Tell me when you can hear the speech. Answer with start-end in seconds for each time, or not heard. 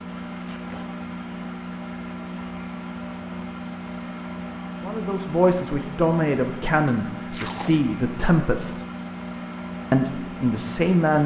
4.8-8.8, 9.9-11.2.